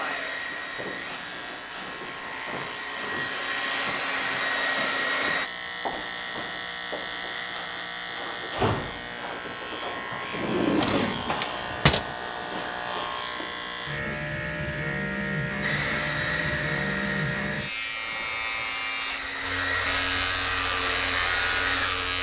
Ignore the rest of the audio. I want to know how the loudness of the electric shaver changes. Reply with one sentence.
The volume of the electric shaver goes up.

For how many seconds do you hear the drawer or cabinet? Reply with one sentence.
You can hear the drawer or cabinet for 2 seconds altogether.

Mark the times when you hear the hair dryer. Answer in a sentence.
The hair dryer can be heard from 0.0 to 5.5 s and from 15.6 to 22.1 s.